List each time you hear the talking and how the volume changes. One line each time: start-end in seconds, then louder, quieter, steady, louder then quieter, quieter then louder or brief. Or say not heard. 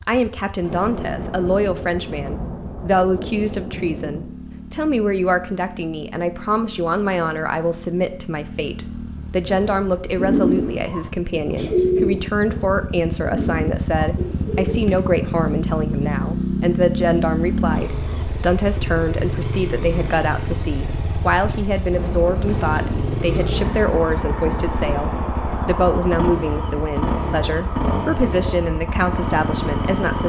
0.1-30.2 steady.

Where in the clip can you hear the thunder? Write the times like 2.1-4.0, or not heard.
0.6-4.3, 21.9-24.8.